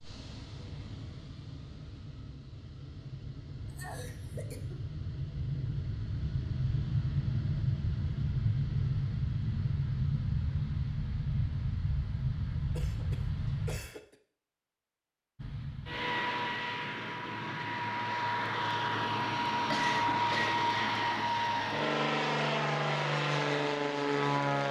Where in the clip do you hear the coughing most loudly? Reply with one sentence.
The loudest moment of the coughing is at 20 seconds.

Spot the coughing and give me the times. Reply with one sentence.
The coughing can be heard from 3.6 to 4.8 s, from 12.8 to 14.2 s and from 19.7 to 20.6 s.